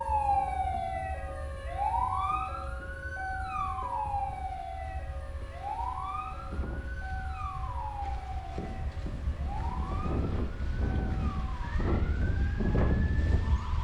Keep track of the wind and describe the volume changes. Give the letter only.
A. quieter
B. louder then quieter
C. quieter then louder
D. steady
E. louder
E.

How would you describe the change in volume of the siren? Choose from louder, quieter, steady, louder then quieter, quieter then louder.
quieter.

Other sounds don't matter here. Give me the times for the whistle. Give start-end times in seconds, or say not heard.
not heard.